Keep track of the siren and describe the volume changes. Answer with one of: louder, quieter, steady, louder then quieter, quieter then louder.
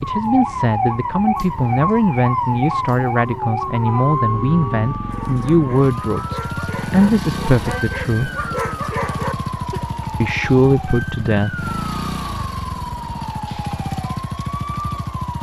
quieter.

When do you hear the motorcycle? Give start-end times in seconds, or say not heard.
0.0-15.3.